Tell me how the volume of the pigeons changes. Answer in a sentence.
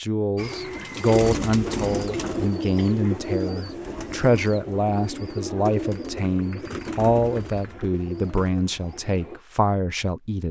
The loudness of the pigeons goes down.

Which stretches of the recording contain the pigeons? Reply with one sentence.
The pigeons can be heard from 0.3 to 9.4 s.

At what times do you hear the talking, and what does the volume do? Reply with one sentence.
You can hear the talking from 0.0 to 10.4 s, at a steady volume.